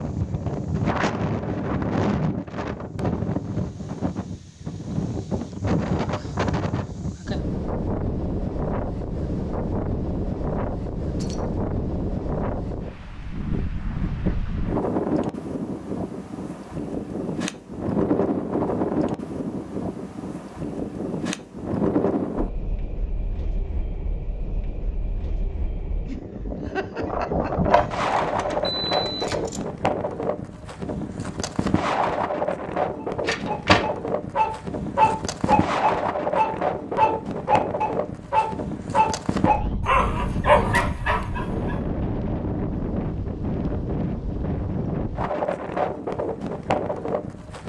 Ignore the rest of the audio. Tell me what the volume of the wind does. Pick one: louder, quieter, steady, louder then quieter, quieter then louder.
steady.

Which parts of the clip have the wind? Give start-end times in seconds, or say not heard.
0.0-47.6.